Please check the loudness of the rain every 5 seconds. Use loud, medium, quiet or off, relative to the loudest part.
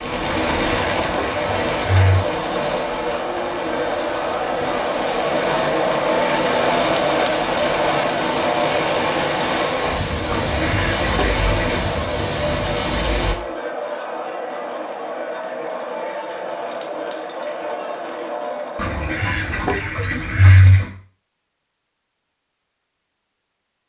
loud, loud, loud, off, off.